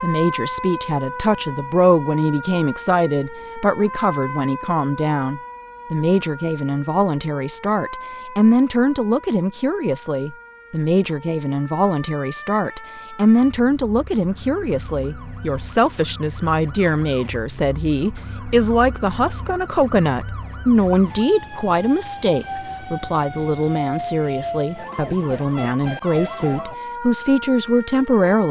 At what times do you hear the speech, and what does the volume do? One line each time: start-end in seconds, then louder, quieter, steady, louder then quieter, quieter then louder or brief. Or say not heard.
0.0-28.4 steady.